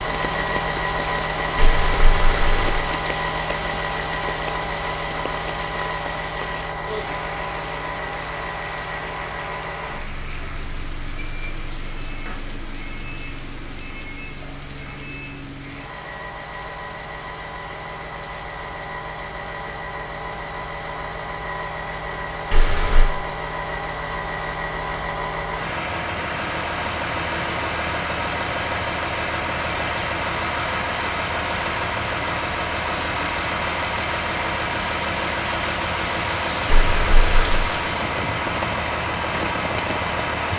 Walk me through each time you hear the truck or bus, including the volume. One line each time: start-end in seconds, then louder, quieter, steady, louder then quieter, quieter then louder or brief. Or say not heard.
0.0-40.5 quieter then louder.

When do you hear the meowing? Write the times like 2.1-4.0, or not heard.
1.6-2.9, 22.5-23.1, 36.6-37.6.